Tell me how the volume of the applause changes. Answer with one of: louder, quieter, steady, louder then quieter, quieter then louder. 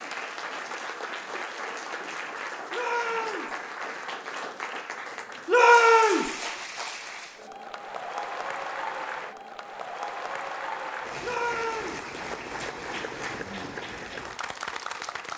steady.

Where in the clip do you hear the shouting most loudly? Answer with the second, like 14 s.
6 s.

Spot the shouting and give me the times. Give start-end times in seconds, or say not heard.
2.7-3.5, 5.5-6.3, 11.2-12.0.